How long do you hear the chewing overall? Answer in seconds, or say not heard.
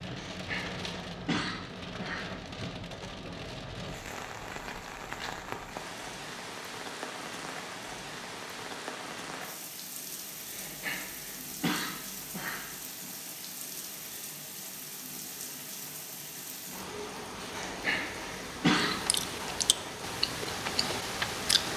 3 s.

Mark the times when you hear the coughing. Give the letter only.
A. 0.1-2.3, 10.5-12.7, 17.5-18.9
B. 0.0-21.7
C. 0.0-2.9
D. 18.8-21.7
A.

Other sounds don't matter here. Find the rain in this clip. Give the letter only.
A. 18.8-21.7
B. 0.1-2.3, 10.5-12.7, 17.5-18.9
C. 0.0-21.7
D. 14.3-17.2
C.